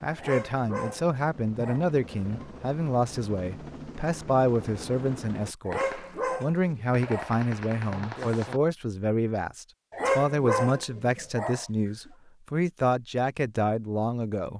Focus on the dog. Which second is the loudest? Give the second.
10 s.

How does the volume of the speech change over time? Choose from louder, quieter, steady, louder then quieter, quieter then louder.
steady.